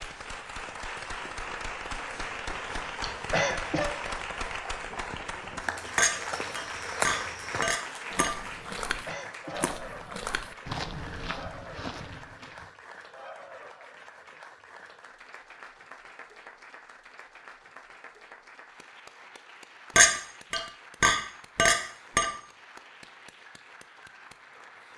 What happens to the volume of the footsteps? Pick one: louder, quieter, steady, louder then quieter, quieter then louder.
quieter.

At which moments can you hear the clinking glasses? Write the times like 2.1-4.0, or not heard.
6.0-8.3, 19.9-22.3.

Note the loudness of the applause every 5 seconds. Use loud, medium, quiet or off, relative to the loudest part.
loud, loud, medium, quiet, quiet.